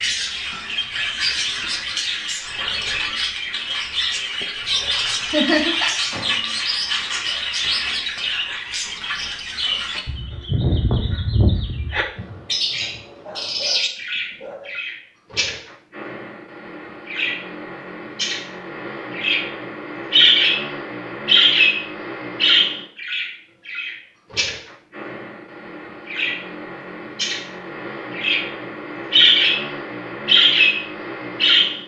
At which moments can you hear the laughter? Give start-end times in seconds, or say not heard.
5.2-6.0.